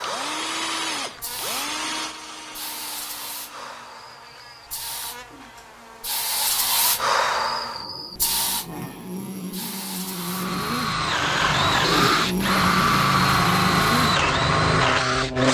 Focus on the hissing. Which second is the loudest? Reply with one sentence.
The loudest moment of the hissing is at 7 seconds.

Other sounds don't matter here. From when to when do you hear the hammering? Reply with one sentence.
The hammering can't be heard in this clip.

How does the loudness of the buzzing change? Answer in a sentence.
The volume of the buzzing goes up.